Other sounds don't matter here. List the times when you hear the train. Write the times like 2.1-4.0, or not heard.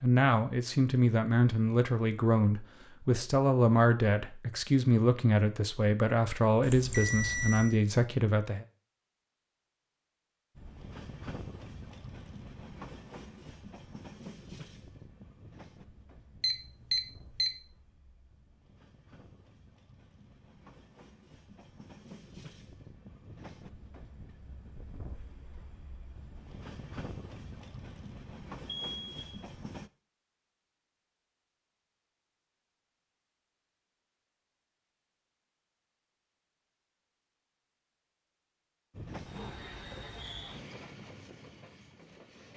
10.6-29.9, 38.9-42.5.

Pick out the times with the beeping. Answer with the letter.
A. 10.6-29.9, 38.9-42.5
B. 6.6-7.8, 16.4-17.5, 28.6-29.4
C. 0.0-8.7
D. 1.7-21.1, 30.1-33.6
B.